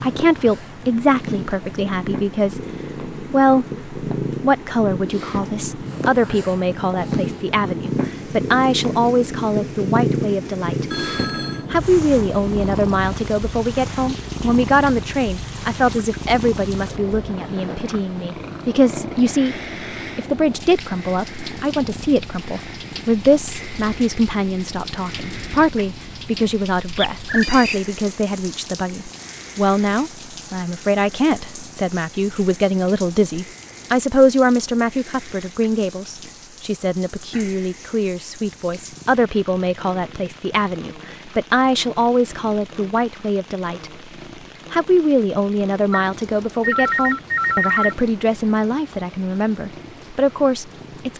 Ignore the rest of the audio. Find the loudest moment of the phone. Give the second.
48 s.